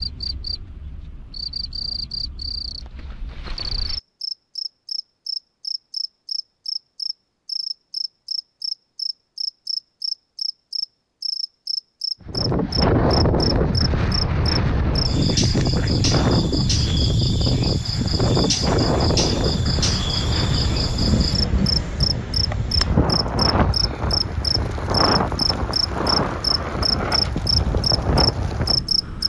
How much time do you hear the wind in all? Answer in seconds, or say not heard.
17 s.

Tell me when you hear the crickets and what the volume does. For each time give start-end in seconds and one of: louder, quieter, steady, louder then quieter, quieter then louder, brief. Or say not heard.
0.0-29.2 louder.